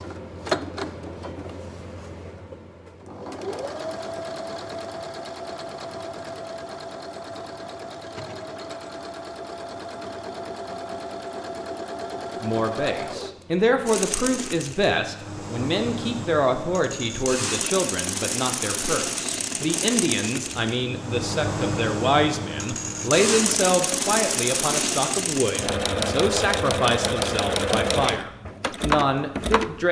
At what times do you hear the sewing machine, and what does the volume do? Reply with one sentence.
You can hear the sewing machine from 0.0 to 29.8 s, getting louder.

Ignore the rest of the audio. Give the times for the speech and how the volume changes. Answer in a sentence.
The speech can be heard from 12.4 to 29.8 s, at a steady volume.